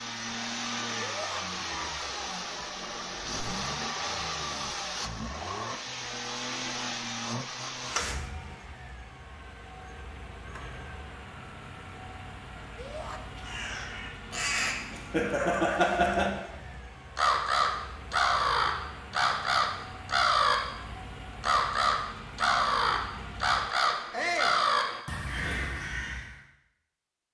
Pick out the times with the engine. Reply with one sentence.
The engine can be heard from 0.0 to 25.1 s.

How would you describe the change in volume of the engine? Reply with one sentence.
The volume of the engine goes down.